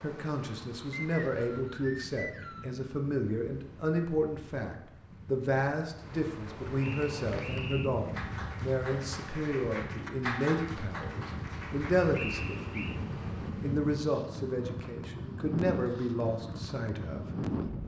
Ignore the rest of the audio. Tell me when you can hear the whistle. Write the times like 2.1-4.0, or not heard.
0.9-2.7, 6.8-7.9, 12.1-13.0.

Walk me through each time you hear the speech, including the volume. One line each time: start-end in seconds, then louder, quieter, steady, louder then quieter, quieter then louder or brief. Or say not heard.
0.0-17.8 steady.